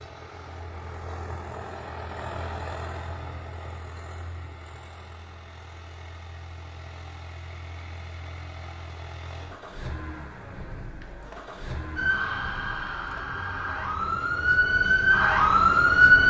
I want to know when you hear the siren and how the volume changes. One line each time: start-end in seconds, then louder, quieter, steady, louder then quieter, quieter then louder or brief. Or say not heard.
11.9-16.2 louder.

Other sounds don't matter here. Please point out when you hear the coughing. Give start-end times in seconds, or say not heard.
not heard.